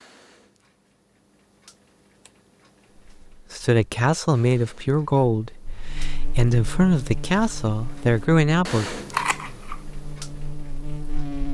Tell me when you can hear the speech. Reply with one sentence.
You can hear the speech from 3.5 to 8.9 s.